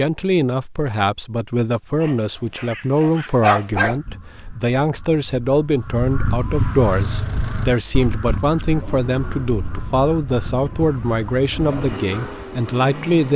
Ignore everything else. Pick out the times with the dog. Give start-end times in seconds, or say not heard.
2.0-4.0.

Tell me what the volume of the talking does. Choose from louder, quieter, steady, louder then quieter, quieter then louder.
steady.